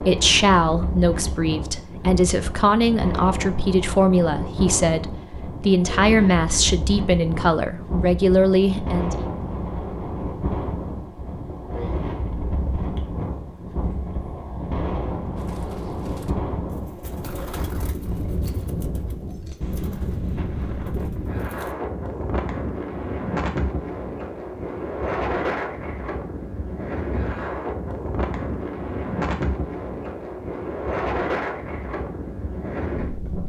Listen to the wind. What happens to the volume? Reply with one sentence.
The volume of the wind stays about the same.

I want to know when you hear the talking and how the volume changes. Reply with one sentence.
The talking can be heard from 0.0 to 9.2 s, at a steady volume.